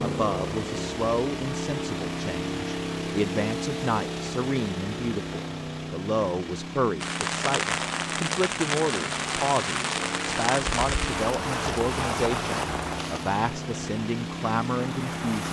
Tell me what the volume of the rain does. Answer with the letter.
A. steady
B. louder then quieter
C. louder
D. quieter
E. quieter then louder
D.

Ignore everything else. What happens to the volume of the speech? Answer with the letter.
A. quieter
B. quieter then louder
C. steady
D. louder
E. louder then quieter
C.